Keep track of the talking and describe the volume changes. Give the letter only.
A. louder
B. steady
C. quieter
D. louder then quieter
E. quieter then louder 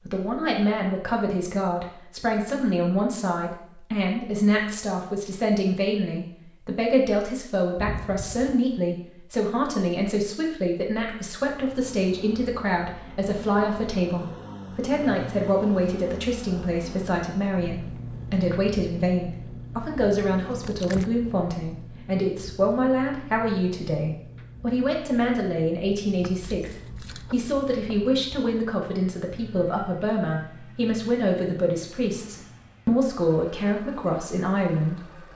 B.